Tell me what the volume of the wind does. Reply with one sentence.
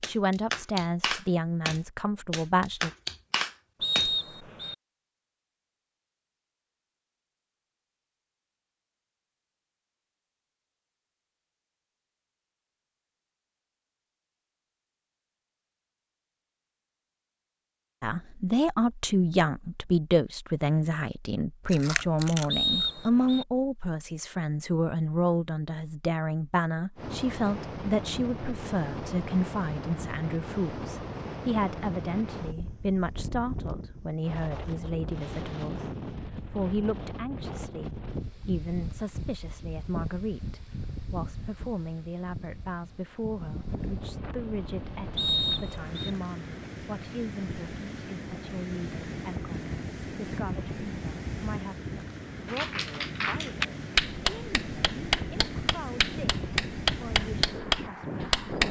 The volume of the wind stays about the same.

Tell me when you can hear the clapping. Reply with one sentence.
You can hear the clapping from 0.0 to 4.1 s and from 52.5 to 58.6 s.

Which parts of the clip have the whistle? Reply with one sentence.
You can hear the whistle from 3.8 to 4.8 s, from 22.5 to 23.4 s and from 45.1 to 46.1 s.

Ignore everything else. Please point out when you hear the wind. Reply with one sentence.
You can hear the wind from 26.9 to 58.6 s.